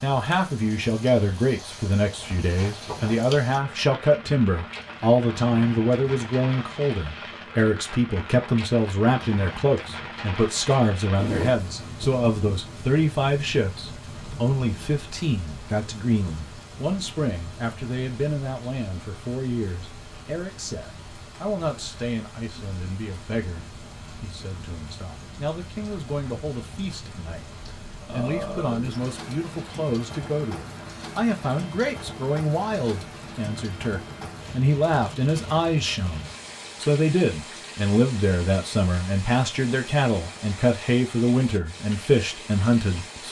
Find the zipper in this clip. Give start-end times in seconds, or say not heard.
10.7-12.2.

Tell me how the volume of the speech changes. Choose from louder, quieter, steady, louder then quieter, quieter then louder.
quieter then louder.